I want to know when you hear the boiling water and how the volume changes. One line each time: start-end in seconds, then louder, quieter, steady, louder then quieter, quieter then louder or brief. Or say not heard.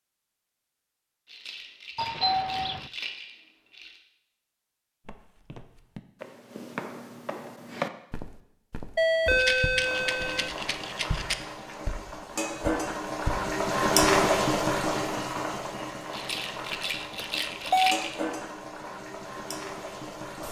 9.8-20.4 louder then quieter.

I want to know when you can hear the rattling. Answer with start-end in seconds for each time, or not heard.
1.2-4.0, 9.3-11.3, 16.1-18.4.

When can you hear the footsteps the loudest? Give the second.
8 s.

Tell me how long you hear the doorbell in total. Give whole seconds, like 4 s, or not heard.
3 s.